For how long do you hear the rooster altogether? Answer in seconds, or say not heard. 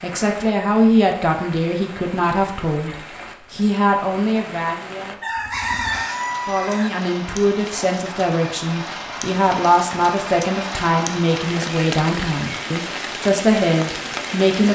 2 s.